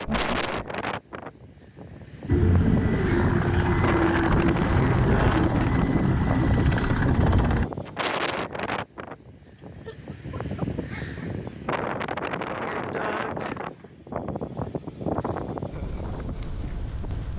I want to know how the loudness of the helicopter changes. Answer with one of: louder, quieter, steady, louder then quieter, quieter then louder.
steady.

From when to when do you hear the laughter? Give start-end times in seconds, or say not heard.
0.1-0.6, 9.8-10.7.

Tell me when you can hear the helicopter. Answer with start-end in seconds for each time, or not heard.
2.2-7.7.